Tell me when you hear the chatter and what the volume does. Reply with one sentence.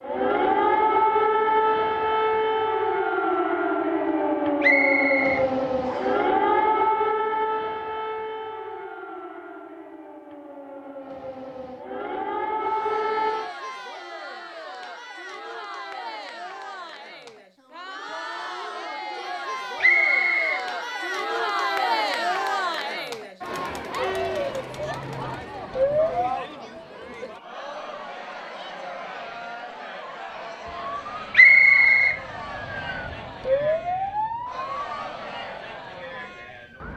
You can hear the chatter from 12.6 to 36.9 s, getting louder then quieter.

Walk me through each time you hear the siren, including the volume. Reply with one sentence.
The siren can be heard from 0.0 to 13.5 s, getting quieter then louder; briefly from 24.1 to 26.4 s; and from 30.6 to 36.9 s, getting louder then quieter.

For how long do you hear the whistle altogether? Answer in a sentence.
The whistle can be heard for 3 seconds in total.